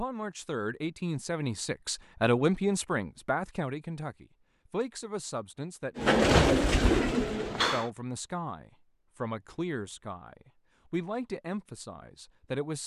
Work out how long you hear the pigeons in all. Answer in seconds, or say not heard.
2 s.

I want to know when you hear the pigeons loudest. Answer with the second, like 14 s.
6 s.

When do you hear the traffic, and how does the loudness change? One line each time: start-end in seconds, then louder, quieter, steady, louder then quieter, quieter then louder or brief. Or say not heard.
not heard.